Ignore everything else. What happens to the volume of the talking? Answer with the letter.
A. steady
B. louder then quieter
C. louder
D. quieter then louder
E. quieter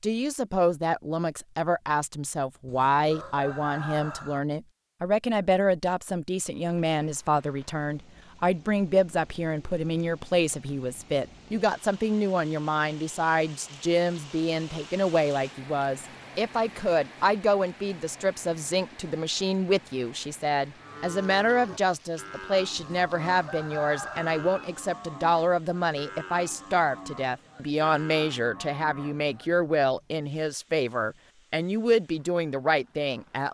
A.